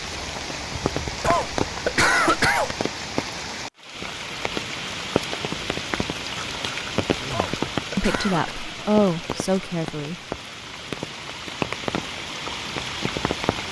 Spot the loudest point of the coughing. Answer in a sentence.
The volume of the coughing peaks at 2 seconds.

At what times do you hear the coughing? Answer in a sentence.
You can hear the coughing from 1.2 to 2.7 s and from 7.3 to 8.6 s.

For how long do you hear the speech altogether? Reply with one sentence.
You can hear the speech for 3 seconds altogether.